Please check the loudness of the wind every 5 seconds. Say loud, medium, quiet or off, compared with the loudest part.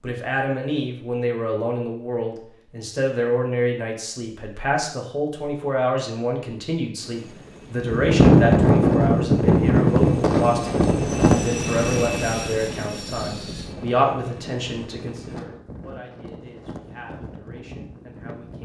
off, loud, medium, quiet.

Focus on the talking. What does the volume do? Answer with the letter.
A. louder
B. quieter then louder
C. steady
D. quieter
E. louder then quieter
D.